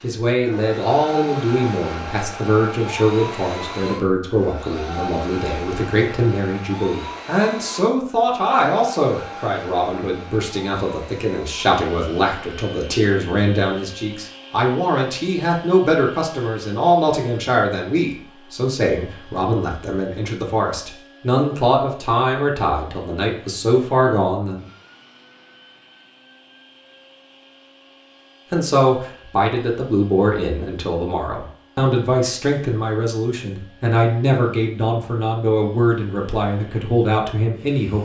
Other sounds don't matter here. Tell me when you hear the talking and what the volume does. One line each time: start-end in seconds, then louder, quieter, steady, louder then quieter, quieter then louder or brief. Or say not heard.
0.0-24.6 steady
28.5-38.0 steady.